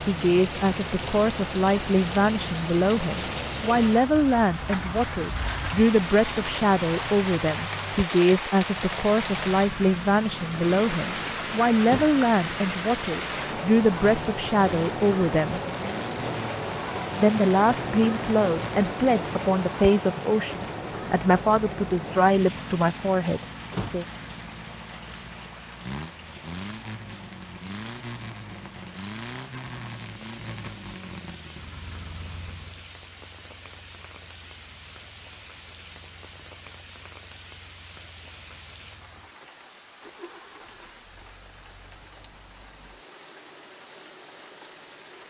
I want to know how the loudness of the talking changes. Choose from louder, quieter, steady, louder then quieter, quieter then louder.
steady.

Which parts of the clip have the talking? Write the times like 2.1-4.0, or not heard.
0.1-15.6, 17.2-24.1.